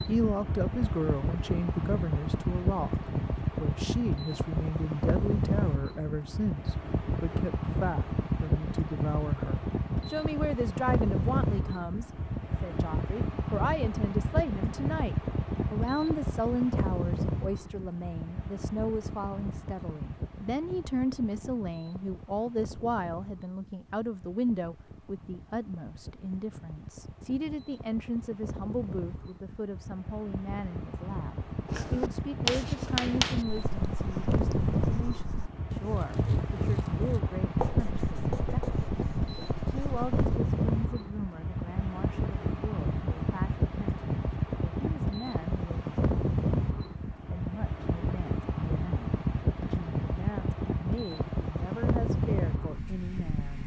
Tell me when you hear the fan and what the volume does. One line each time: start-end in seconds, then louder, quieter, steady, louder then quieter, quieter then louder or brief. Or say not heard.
0.0-53.6 quieter then louder.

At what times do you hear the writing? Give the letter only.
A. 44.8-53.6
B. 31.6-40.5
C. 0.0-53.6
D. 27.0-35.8
B.